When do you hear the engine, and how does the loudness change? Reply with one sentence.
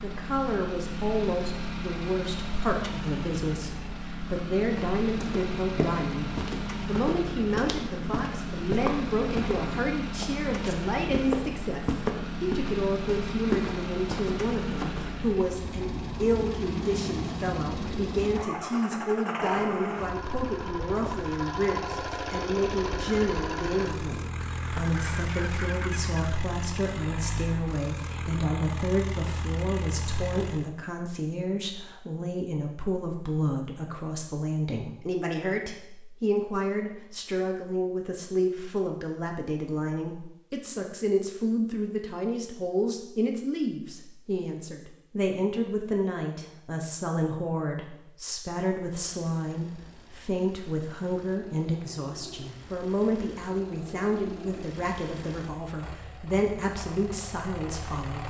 The engine can be heard from 0.0 to 30.7 s, at a steady volume; and from 49.0 to 58.2 s, getting louder.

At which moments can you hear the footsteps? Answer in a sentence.
You can hear the footsteps from 4.8 to 15.2 s.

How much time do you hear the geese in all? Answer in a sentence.
You can hear the geese for 2 seconds altogether.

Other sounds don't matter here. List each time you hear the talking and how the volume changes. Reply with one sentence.
You can hear the talking from 0.0 to 58.2 s, at a steady volume.